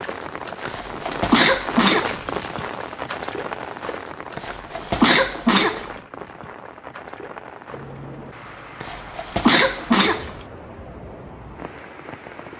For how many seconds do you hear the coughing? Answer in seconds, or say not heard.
5 s.